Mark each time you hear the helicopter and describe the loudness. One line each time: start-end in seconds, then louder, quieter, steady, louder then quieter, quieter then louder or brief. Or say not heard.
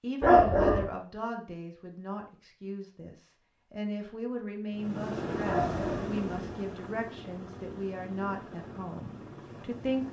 4.7-10.0 quieter.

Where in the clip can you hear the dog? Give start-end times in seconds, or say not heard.
0.2-0.8, 5.5-6.1.